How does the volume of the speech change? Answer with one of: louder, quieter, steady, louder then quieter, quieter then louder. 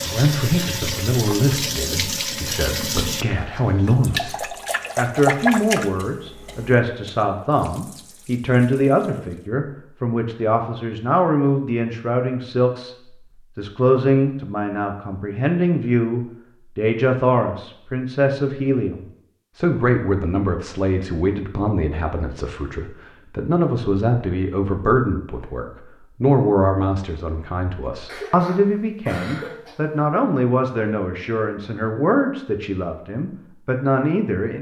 steady.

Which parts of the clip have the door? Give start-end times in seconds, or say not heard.
not heard.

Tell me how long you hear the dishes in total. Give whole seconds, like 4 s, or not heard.
not heard.